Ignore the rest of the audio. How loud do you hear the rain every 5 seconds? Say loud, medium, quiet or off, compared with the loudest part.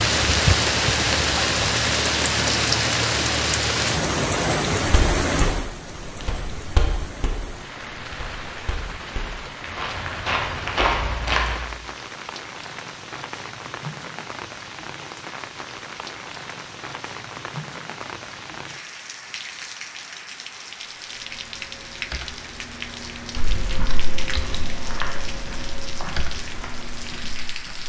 loud, medium, quiet, quiet, quiet, quiet.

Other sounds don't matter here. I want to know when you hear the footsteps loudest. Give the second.
11 s.